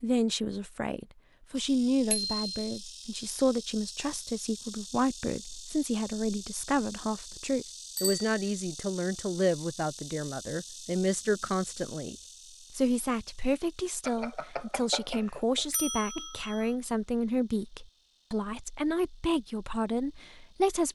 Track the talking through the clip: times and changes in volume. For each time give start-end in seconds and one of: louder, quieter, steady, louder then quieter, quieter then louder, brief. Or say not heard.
0.0-20.8 steady.